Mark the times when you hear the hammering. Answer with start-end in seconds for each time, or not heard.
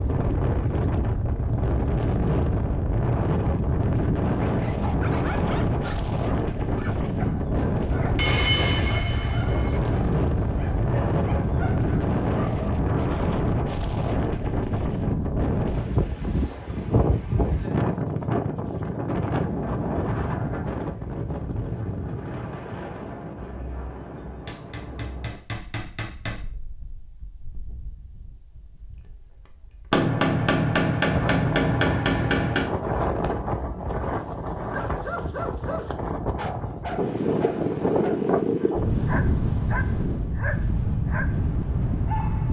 8.2-9.8, 24.4-26.4, 29.9-32.6.